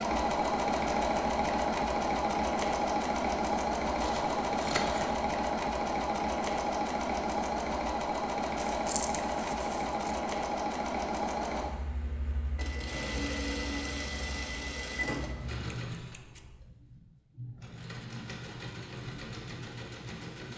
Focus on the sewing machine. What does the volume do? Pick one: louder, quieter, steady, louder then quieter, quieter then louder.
quieter.